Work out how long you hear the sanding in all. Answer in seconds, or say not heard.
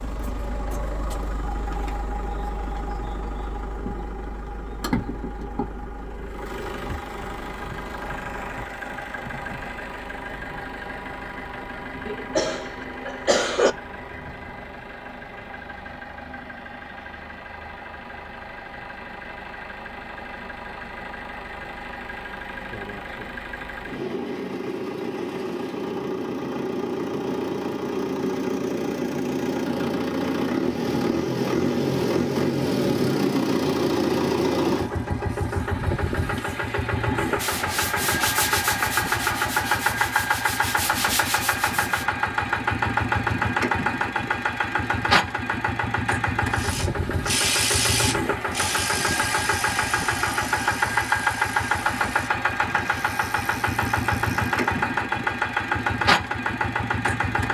5 s.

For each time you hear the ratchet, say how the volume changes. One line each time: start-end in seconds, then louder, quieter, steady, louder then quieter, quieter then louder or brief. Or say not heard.
46.5-54.6 quieter.